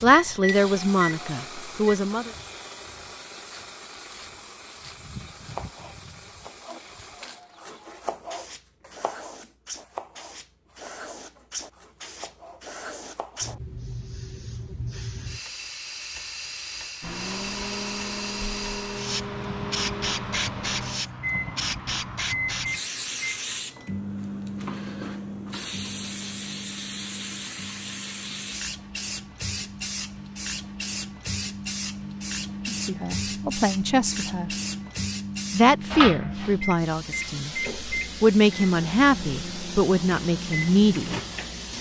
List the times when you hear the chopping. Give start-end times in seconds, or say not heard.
5.4-13.5.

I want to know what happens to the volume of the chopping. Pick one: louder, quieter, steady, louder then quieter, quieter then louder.
louder then quieter.